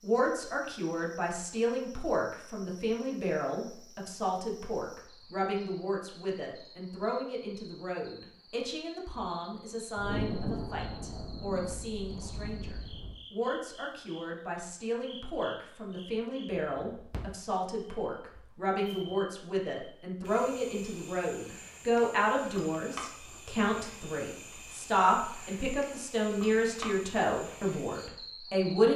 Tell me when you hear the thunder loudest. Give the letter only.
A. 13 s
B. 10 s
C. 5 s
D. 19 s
B.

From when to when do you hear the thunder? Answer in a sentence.
You can hear the thunder from 9.9 to 13.2 s.